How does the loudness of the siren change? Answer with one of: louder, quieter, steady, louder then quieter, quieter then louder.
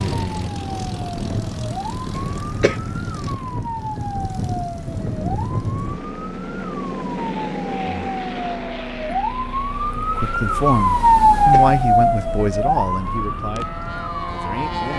louder.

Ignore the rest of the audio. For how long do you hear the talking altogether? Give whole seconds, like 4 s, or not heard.
5 s.